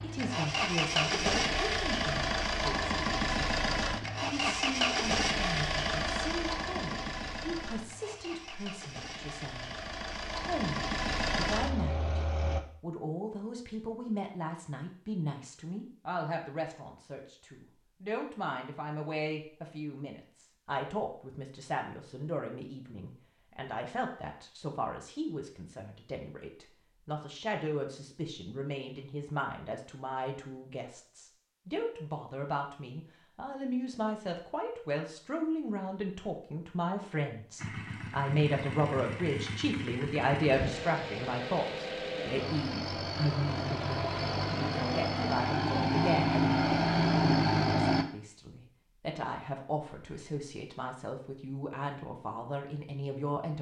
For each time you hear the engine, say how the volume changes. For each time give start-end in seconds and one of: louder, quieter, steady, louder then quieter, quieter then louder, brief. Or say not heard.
0.0-12.6 quieter then louder
37.5-48.0 louder.